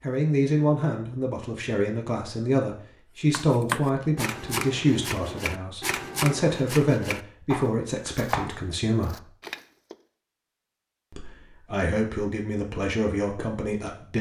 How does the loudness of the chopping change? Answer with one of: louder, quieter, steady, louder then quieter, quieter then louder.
quieter.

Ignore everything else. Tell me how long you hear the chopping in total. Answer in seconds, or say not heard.
7 s.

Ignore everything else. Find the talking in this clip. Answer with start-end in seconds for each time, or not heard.
0.0-9.2, 11.1-14.1.